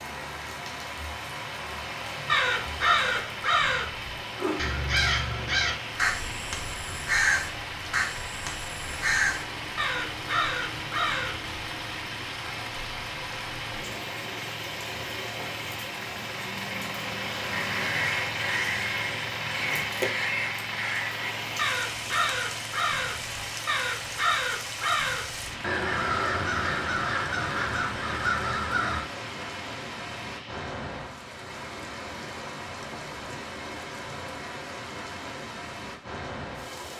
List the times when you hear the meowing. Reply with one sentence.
You can't hear the meowing here.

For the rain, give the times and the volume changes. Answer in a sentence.
You can hear the rain from 0.0 to 36.9 s, at a steady volume.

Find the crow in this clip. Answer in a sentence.
You can hear the crow from 2.2 to 11.5 s and from 17.5 to 29.0 s.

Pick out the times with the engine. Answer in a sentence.
You can hear the engine from 0.1 to 30.7 s.